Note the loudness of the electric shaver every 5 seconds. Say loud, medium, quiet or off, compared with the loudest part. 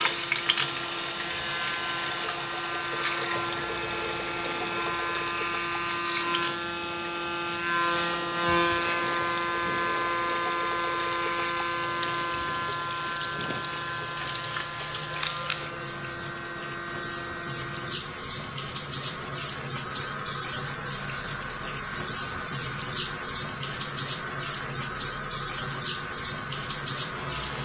medium, loud, loud, medium, quiet, quiet.